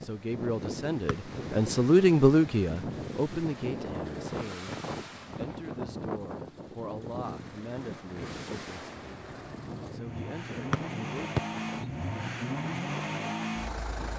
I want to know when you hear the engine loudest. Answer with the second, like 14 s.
13 s.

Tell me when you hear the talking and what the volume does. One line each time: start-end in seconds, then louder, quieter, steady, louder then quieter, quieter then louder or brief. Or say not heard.
0.0-9.2 quieter
9.9-11.3 brief.